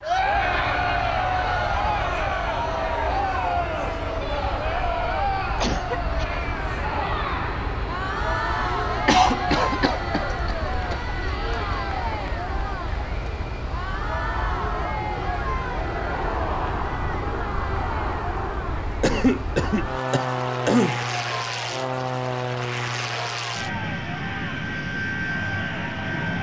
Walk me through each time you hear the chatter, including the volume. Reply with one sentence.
You can hear the chatter from 0.0 to 26.3 s, getting quieter.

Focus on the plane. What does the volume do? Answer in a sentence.
The loudness of the plane goes up.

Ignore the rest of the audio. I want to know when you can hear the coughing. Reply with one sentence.
You can hear the coughing from 5.6 to 6.2 s, from 9.1 to 10.9 s and from 19.0 to 21.0 s.